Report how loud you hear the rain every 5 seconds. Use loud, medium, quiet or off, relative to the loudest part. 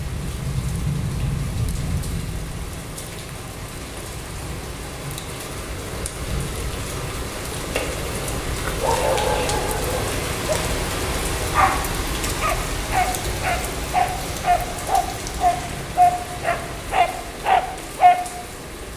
loud, loud, loud, medium.